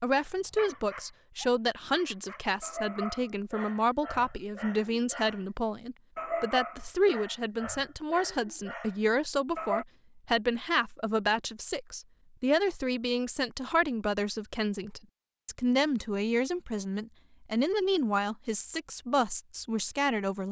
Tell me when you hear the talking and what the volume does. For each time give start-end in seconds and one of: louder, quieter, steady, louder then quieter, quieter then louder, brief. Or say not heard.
0.0-20.4 steady.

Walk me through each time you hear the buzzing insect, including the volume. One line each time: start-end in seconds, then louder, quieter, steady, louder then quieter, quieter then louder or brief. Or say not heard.
not heard.